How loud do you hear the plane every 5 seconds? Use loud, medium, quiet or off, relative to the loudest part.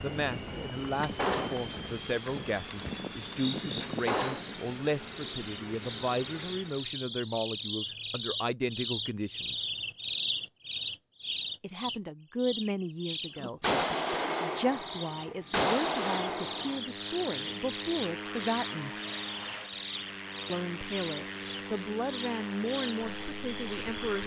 loud, loud, off, loud, loud.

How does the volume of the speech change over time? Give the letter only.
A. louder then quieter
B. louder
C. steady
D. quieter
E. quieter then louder
C.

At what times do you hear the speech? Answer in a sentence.
The speech can be heard from 0.0 to 9.7 s, from 11.6 to 18.9 s and from 20.4 to 24.2 s.